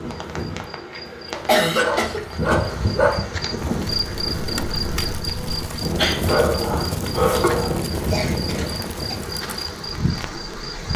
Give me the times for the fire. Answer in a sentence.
You can hear the fire from 3.5 to 10.9 s.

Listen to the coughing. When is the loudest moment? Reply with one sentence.
The loudest moment of the coughing is at 2 seconds.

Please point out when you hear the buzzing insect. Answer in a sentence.
The buzzing insect can be heard from 0.0 to 10.9 s.